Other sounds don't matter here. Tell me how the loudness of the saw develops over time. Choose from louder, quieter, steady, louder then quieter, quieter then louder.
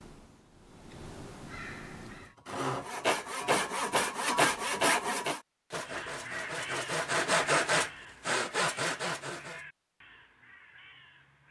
quieter then louder.